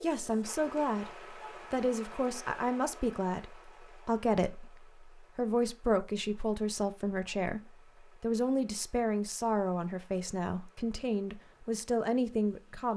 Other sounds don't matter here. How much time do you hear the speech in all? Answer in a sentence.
You can hear the speech for 12 seconds altogether.